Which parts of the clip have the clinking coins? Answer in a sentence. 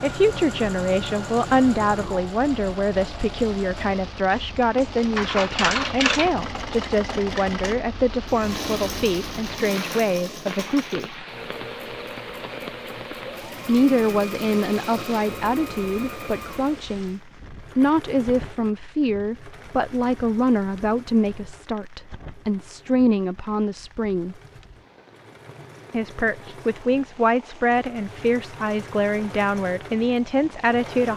You can hear the clinking coins from 4.3 to 6.3 s.